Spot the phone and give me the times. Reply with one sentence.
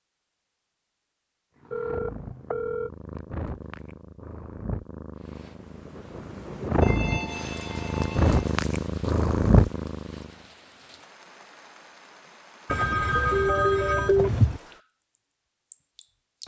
The phone can be heard from 1.7 to 2.9 s, from 6.8 to 8.6 s and from 12.7 to 14.6 s.